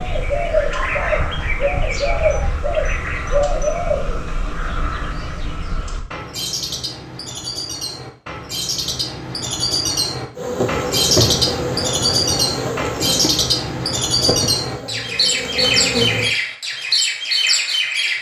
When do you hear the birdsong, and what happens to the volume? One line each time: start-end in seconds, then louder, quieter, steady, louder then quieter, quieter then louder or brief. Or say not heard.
0.0-18.1 quieter then louder.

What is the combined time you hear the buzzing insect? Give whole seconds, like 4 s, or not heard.
6 s.